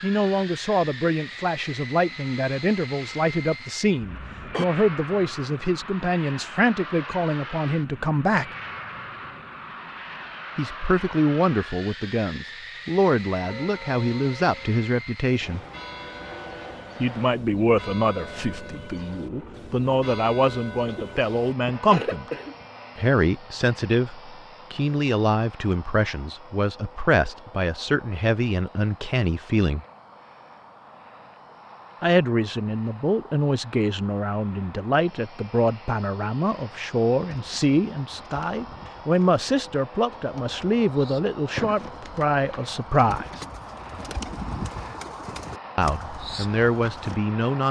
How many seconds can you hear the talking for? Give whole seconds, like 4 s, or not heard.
39 s.